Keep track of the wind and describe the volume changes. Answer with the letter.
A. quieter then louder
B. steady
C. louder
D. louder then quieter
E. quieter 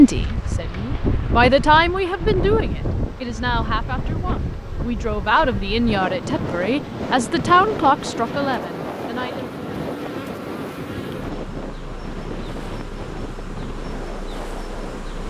E.